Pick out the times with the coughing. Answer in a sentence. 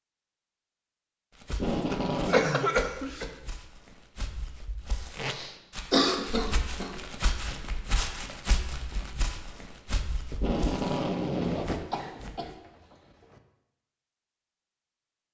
The coughing can be heard from 1.9 to 3.2 s, from 5.2 to 7.0 s and from 11.4 to 13.4 s.